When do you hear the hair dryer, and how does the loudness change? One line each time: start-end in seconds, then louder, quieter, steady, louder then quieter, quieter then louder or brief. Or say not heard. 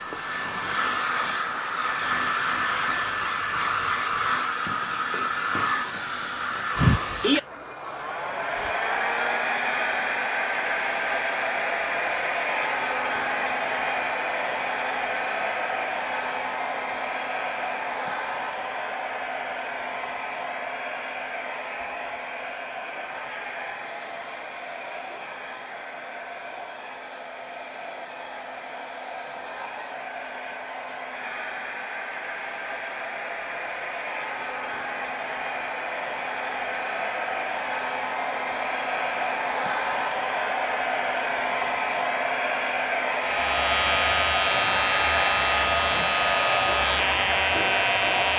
0.0-48.3 quieter then louder.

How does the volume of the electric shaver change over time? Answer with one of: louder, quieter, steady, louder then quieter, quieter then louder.
steady.